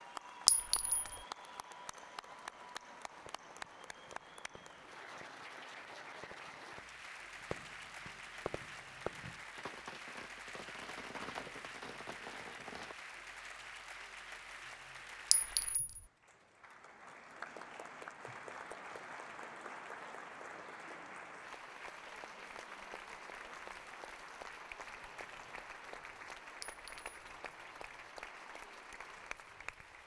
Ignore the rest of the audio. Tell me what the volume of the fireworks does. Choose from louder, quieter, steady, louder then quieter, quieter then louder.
louder.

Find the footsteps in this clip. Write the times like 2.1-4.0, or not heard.
not heard.